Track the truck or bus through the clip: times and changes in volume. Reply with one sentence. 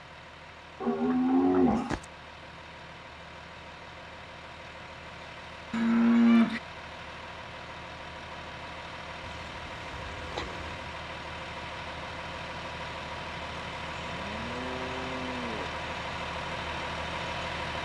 You can hear the truck or bus from 0.0 to 17.8 s, getting louder.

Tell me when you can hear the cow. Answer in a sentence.
You can hear the cow from 0.8 to 2.0 s, from 5.7 to 6.6 s, from 9.2 to 10.9 s and from 14.0 to 15.7 s.